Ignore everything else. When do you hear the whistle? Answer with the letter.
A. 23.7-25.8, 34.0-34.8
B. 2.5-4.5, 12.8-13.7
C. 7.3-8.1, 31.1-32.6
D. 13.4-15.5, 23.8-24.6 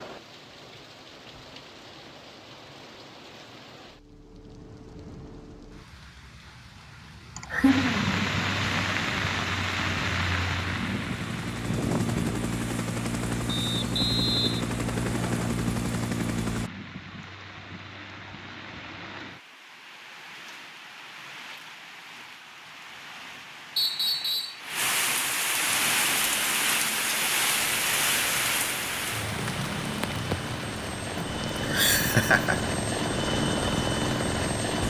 D.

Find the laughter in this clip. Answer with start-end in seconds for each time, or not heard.
7.3-8.1, 31.1-32.6.